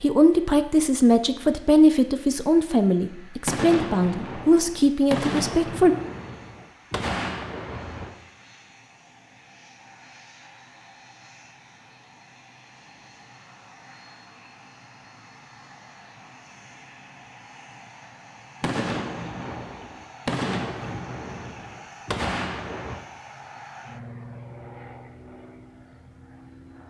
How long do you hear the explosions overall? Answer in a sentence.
The explosions can be heard for 9 seconds in total.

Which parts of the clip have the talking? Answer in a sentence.
You can hear the talking from 0.0 to 6.0 s.